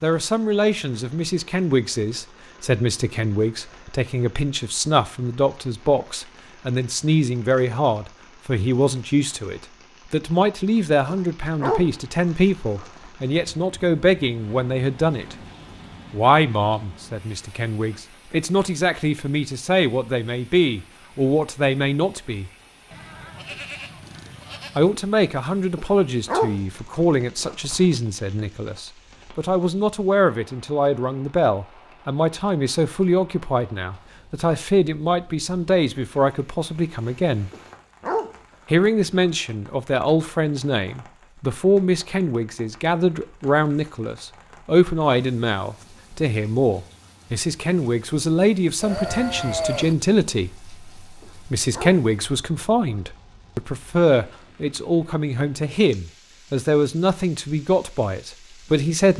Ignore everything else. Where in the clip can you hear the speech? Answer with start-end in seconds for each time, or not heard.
0.0-15.3, 16.1-22.5, 24.8-37.5, 38.7-59.1.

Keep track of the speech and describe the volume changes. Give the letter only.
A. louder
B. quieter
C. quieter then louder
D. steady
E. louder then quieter
D.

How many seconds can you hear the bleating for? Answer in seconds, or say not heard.
3 s.